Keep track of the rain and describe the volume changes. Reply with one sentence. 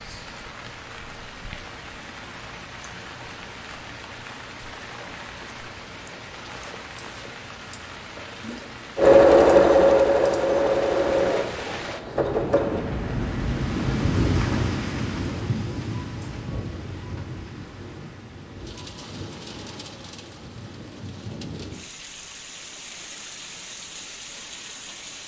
The volume of the rain goes up, then down.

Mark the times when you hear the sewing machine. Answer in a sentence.
The sewing machine can be heard from 8.9 to 12.8 s.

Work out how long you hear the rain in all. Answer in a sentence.
You can hear the rain for 25 seconds altogether.